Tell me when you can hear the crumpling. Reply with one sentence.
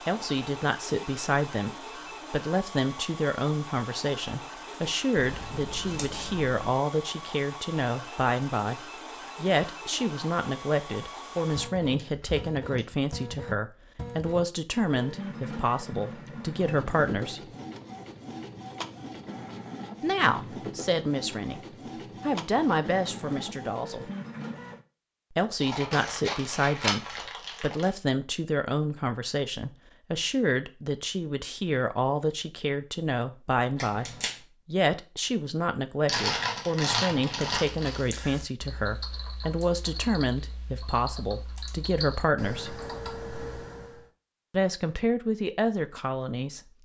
The crumpling can be heard from 12.0 to 13.1 s, from 25.9 to 27.9 s and from 36.0 to 38.0 s.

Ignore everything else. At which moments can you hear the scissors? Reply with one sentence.
You can hear the scissors from 5.2 to 6.5 s, from 25.6 to 27.2 s and from 33.8 to 34.4 s.